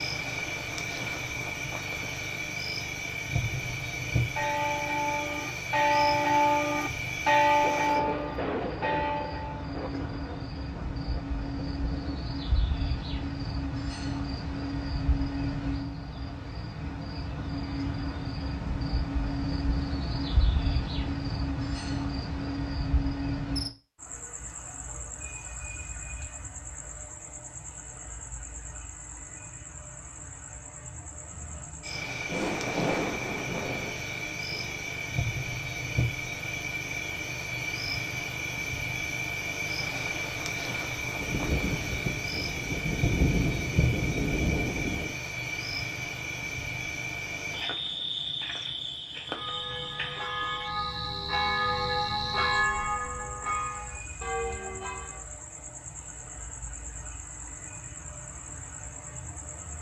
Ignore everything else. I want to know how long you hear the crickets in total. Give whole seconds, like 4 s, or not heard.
60 s.